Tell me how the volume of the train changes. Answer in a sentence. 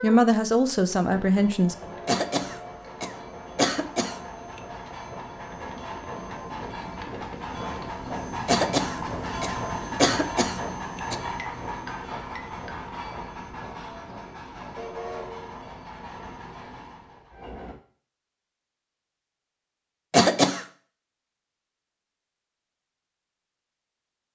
The loudness of the train goes up, then down.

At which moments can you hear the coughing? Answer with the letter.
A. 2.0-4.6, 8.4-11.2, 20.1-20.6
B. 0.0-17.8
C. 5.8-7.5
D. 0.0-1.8
A.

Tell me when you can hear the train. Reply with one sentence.
The train can be heard from 0.0 to 17.8 s.